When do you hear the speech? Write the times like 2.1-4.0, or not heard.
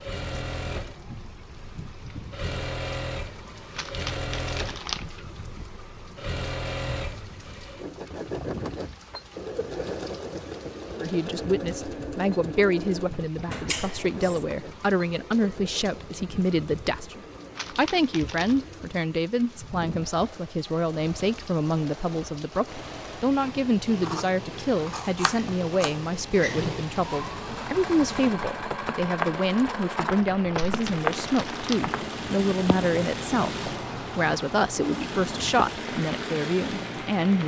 11.0-37.4.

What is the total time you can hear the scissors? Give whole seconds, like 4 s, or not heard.
3 s.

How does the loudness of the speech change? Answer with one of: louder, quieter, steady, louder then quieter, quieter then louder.
steady.